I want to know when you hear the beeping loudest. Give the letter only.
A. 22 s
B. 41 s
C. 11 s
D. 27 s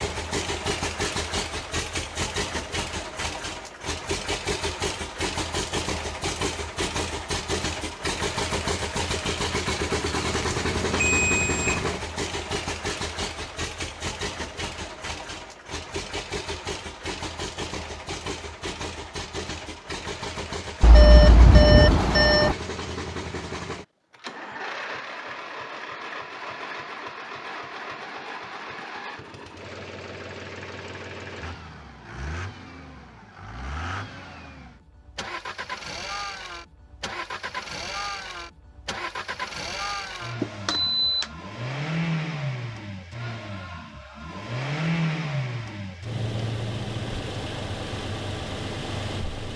A.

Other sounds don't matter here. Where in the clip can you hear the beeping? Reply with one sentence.
You can hear the beeping from 10.3 to 11.8 s, from 20.8 to 22.6 s and from 40.4 to 41.3 s.